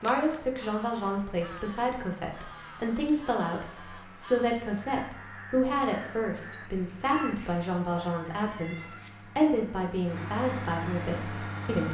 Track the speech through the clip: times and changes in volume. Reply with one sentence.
You can hear the speech from 0.0 to 11.8 s, at a steady volume.